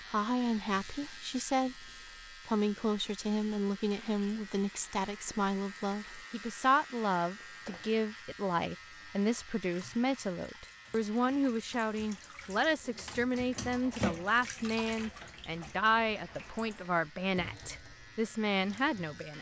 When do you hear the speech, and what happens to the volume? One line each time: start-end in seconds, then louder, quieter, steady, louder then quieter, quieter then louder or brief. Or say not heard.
0.1-19.3 steady.